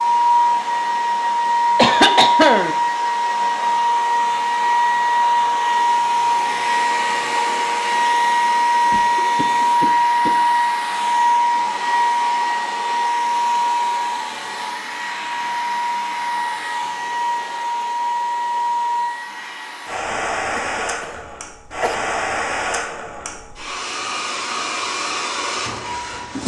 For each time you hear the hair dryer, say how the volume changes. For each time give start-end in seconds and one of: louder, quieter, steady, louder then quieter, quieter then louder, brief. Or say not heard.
0.0-26.4 quieter.